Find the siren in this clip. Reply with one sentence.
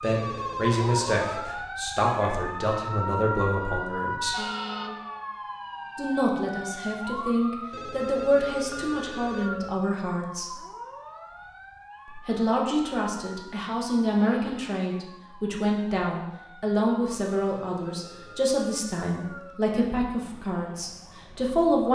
The siren can be heard from 0.0 to 21.8 s.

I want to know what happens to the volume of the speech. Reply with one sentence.
The loudness of the speech stays about the same.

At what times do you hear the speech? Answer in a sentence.
You can hear the speech from 0.0 to 4.3 s, from 6.0 to 10.6 s and from 12.2 to 21.8 s.